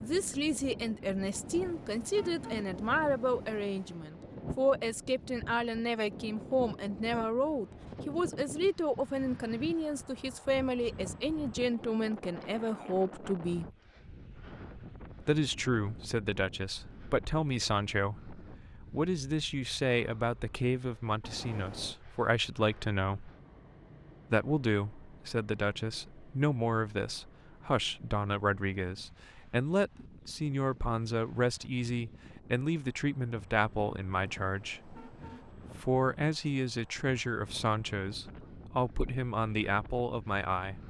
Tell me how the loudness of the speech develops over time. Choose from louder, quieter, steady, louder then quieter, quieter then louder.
steady.